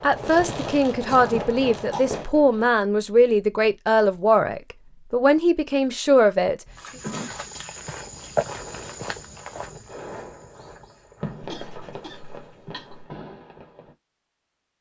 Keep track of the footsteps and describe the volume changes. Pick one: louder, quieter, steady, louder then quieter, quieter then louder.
louder then quieter.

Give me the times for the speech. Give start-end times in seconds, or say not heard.
0.0-6.5.